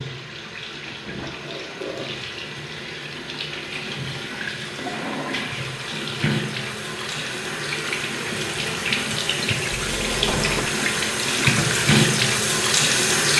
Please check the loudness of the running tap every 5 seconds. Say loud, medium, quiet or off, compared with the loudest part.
quiet, medium, loud.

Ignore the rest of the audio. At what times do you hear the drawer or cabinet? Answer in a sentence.
The drawer or cabinet can be heard from 1.2 to 2.2 s, from 4.6 to 5.6 s and from 9.8 to 10.7 s.